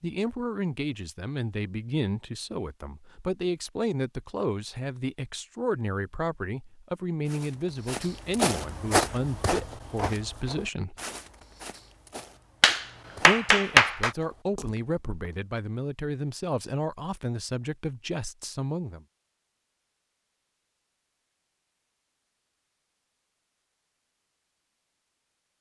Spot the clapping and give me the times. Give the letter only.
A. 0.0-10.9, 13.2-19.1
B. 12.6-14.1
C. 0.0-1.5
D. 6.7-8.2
B.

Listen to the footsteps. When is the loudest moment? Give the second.
9 s.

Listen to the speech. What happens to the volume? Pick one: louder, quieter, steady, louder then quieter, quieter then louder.
steady.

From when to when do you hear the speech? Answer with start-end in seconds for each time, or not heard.
0.0-10.9, 13.2-19.1.